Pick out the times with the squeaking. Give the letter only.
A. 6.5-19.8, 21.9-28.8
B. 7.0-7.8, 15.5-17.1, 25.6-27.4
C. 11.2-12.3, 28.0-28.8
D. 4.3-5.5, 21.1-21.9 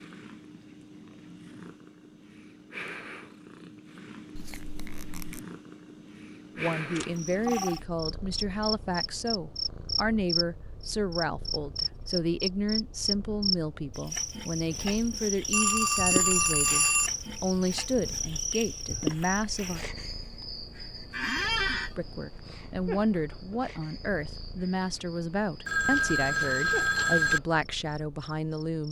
D.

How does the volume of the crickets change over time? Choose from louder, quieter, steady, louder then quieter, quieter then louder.
quieter.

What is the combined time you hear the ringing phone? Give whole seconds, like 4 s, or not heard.
4 s.